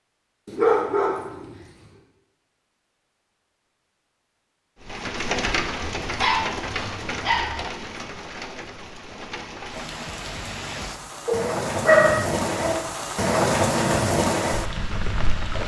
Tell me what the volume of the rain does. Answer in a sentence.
The volume of the rain goes down, then up.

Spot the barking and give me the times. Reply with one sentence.
The barking can be heard from 0.5 to 1.6 s, from 6.0 to 7.7 s and from 11.2 to 12.8 s.